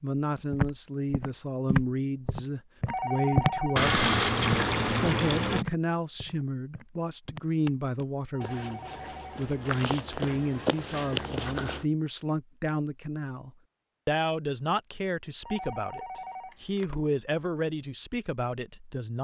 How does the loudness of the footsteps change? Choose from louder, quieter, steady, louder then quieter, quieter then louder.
quieter then louder.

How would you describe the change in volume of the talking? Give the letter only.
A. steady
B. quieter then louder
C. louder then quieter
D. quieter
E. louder
A.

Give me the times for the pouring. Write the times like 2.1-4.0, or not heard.
3.8-5.7.